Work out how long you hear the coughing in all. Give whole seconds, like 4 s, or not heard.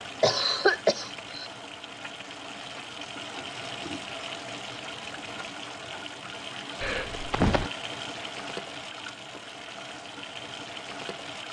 2 s.